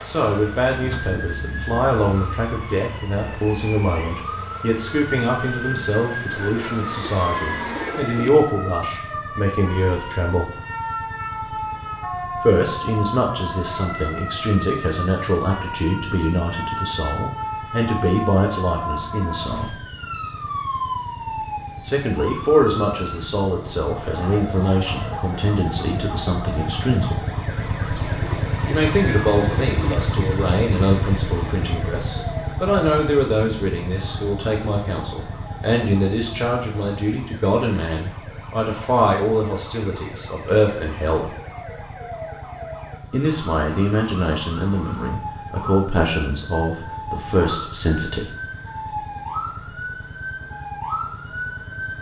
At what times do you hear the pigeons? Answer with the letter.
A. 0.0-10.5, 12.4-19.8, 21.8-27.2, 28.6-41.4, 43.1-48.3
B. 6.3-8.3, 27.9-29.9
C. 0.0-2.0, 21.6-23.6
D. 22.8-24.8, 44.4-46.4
B.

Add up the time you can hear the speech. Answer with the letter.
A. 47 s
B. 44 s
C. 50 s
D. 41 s
D.